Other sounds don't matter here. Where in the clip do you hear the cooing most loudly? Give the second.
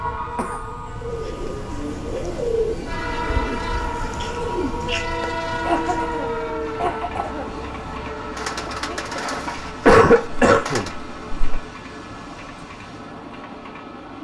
3 s.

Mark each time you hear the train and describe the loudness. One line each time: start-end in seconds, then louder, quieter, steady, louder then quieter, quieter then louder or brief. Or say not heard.
0.0-14.1 louder then quieter.